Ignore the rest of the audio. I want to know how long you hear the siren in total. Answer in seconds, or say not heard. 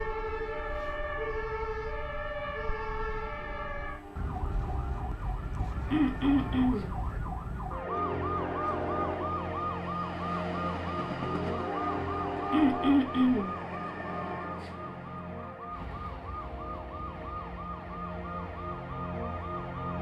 20 s.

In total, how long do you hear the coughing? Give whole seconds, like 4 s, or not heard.
2 s.